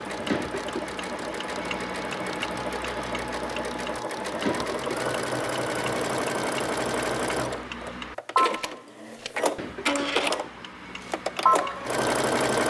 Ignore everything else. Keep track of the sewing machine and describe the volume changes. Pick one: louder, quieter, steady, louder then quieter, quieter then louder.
louder.